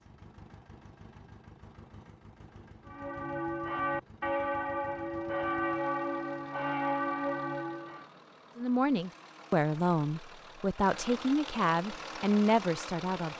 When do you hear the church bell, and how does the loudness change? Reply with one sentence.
The church bell can be heard from 2.9 to 8.1 s, at a steady volume.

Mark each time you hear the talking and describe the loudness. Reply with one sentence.
You can hear the talking from 8.6 to 13.3 s, at a steady volume.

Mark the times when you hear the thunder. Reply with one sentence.
You can't hear the thunder here.